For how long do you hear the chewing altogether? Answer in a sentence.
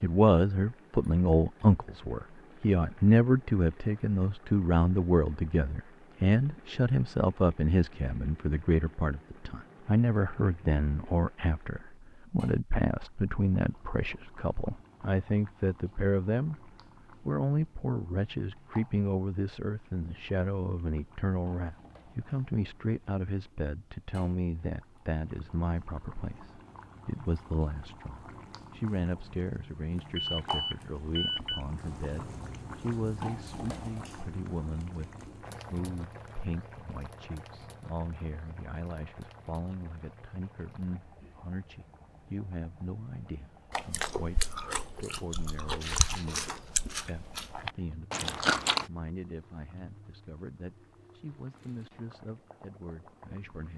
You can hear the chewing for 5 seconds altogether.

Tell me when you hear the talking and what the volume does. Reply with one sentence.
The talking can be heard from 0.0 to 53.7 s, getting quieter.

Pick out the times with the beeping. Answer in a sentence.
The beeping can be heard from 30.1 to 31.6 s.